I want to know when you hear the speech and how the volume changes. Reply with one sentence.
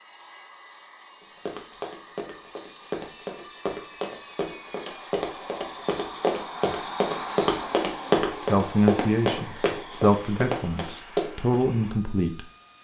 The speech can be heard from 8.4 to 12.4 s, getting quieter then louder.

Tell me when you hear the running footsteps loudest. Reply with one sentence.
The volume of the running footsteps peaks at 8 seconds.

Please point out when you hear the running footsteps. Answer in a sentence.
The running footsteps can be heard from 1.2 to 11.6 s.